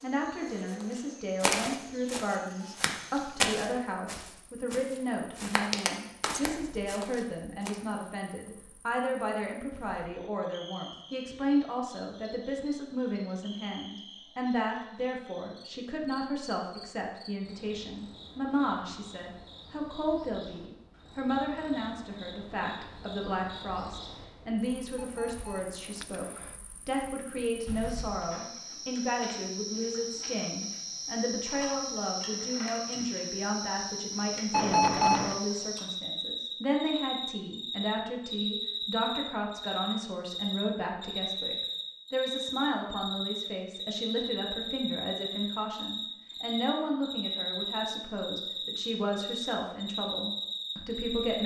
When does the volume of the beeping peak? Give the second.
35 s.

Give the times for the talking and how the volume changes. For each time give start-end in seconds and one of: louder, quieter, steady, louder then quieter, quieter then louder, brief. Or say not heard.
0.0-51.4 steady.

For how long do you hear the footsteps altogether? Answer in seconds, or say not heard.
7 s.